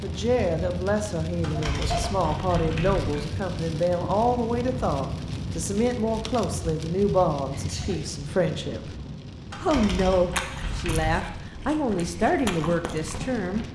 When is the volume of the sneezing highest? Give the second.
2 s.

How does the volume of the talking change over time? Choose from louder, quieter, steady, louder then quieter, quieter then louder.
steady.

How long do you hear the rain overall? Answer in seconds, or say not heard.
14 s.